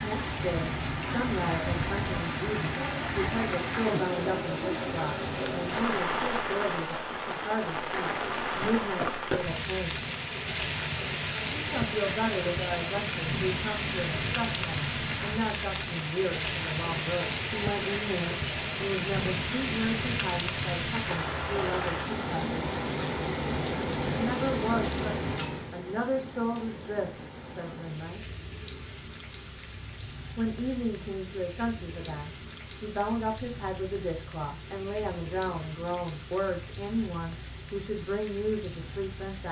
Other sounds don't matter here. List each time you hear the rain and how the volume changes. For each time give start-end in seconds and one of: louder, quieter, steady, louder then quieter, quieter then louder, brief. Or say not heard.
0.0-39.4 quieter.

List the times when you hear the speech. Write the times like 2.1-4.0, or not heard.
0.0-9.9, 11.5-22.6, 24.1-28.2, 30.4-39.4.